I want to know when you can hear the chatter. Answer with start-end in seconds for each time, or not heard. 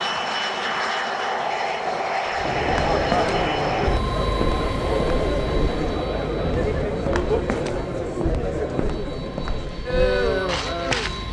2.4-11.2.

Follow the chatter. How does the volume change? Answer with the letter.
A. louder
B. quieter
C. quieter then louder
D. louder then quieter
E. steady
E.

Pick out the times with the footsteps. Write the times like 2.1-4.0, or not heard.
2.5-11.2.